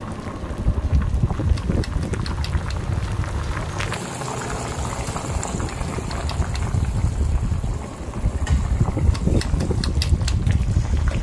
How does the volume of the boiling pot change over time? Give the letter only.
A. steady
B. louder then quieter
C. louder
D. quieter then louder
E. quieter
B.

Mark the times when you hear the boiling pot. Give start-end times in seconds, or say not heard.
0.0-11.1.